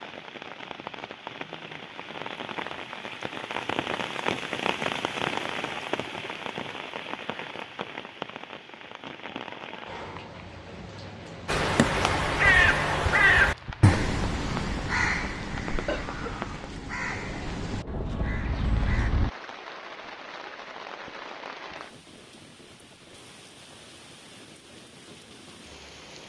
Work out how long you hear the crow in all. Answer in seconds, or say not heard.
8 s.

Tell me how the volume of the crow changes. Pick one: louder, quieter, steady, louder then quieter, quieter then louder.
quieter.